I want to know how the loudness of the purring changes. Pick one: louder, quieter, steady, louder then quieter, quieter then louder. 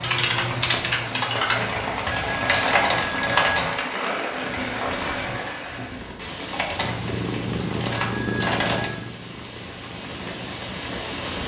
quieter.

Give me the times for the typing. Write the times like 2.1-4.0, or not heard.
0.0-3.8, 6.5-8.9.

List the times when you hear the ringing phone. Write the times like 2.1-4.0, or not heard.
2.1-3.5, 8.0-9.1.